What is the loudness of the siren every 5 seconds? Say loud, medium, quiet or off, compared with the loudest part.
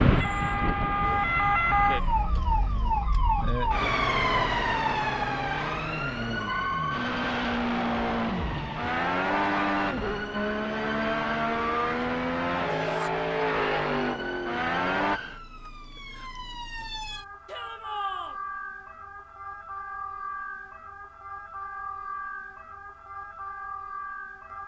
loud, medium, quiet, quiet, quiet.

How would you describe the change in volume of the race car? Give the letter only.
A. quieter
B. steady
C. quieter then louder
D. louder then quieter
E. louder
E.